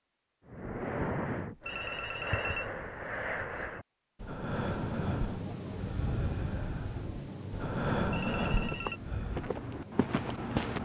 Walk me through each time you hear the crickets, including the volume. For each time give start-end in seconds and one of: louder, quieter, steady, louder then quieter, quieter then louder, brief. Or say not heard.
4.5-10.8 quieter.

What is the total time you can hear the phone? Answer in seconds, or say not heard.
2 s.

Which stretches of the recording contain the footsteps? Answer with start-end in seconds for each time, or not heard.
8.5-10.8.